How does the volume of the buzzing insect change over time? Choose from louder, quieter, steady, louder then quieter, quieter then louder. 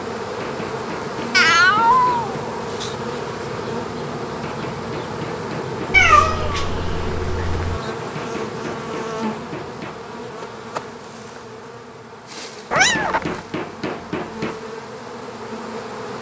quieter.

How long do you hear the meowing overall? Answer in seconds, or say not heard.
4 s.